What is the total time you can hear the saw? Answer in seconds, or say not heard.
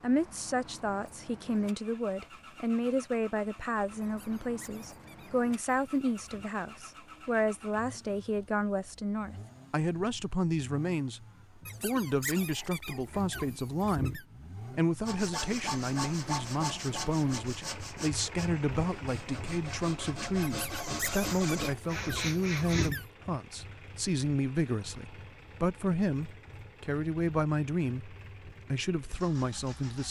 8 s.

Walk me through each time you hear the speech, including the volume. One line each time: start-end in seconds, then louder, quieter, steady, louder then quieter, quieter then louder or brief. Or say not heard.
0.0-30.0 steady.